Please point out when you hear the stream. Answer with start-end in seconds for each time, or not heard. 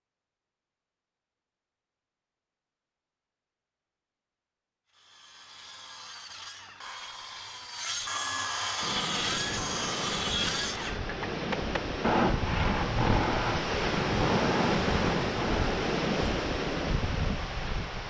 8.8-18.0.